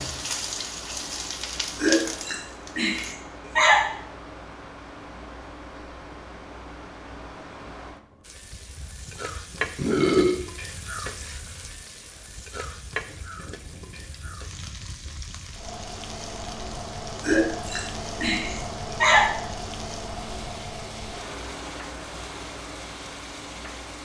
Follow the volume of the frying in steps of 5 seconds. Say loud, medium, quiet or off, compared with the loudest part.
loud, loud, medium, medium, medium.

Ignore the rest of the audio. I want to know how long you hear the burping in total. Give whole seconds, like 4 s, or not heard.
5 s.